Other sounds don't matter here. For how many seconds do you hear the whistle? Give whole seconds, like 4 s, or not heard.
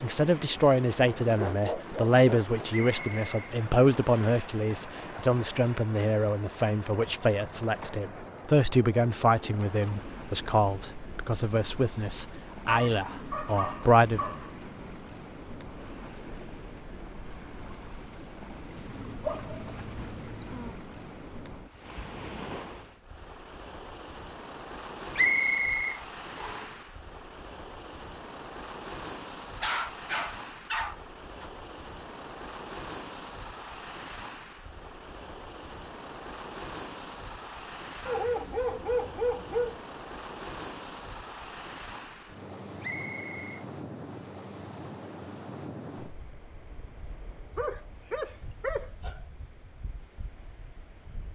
3 s.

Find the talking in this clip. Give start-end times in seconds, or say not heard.
0.0-14.2.